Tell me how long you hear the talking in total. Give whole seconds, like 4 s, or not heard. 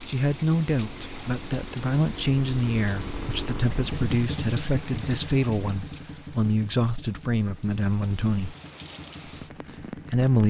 9 s.